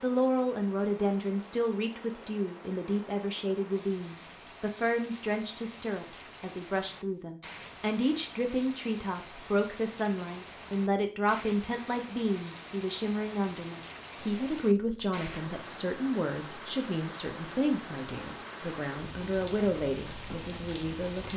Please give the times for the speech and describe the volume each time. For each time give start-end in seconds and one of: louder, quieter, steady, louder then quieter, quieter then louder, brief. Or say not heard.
0.0-21.3 steady.